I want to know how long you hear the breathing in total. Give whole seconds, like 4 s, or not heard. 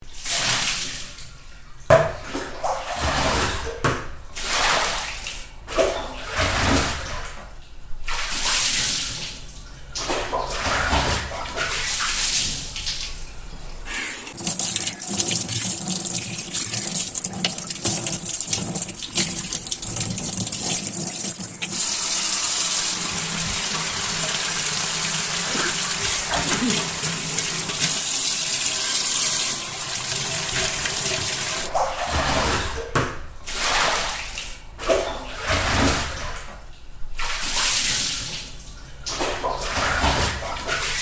not heard.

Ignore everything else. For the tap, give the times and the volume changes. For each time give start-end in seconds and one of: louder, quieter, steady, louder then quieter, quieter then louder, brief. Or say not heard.
0.0-40.9 steady.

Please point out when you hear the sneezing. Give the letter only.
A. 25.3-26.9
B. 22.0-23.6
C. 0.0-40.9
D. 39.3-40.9
A.